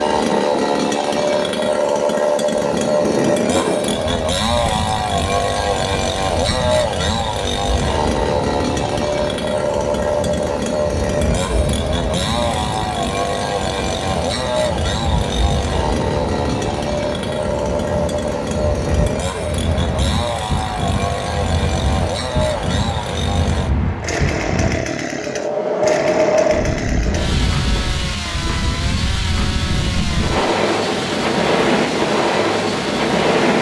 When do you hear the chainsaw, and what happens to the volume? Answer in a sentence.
The chainsaw can be heard from 0.0 to 33.5 s, getting quieter.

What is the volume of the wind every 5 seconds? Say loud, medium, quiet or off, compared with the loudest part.
medium, medium, medium, medium, medium, loud, loud.